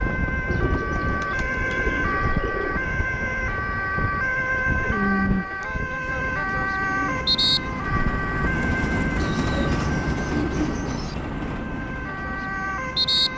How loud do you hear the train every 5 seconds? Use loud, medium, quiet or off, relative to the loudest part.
medium, loud, loud.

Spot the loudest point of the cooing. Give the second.
5 s.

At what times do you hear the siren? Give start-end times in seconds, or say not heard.
0.0-13.3.